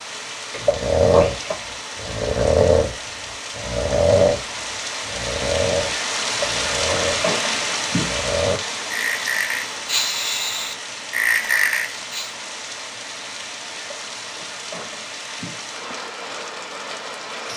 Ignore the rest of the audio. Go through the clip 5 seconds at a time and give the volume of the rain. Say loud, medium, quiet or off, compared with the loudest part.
medium, loud, medium, medium.